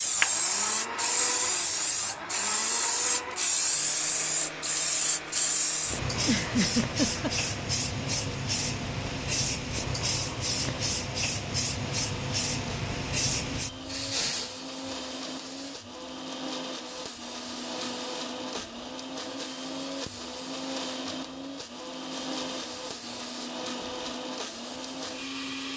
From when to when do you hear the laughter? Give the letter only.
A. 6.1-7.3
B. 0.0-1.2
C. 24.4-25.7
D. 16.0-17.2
A.